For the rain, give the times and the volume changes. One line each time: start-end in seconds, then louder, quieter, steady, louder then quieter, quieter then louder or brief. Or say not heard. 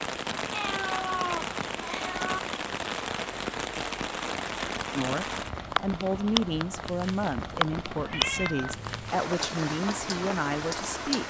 0.0-11.2 steady.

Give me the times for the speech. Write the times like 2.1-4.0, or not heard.
5.0-11.2.